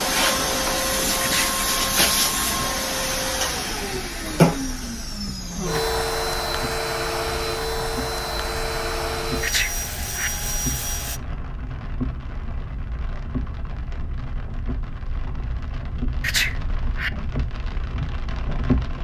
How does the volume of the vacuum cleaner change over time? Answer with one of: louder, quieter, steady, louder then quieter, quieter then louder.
quieter.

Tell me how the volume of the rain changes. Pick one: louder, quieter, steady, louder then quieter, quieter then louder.
louder.